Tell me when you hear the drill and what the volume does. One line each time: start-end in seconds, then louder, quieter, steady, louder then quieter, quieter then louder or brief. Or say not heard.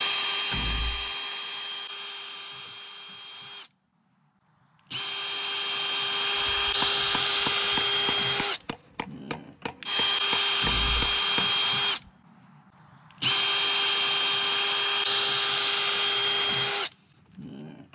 0.0-17.9 louder.